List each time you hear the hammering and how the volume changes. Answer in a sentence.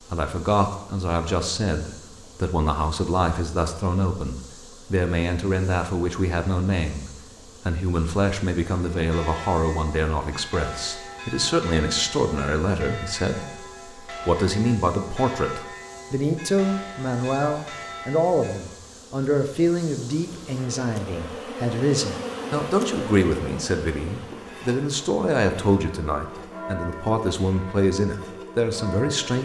You can't hear the hammering here.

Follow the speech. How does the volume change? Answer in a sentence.
The volume of the speech stays about the same.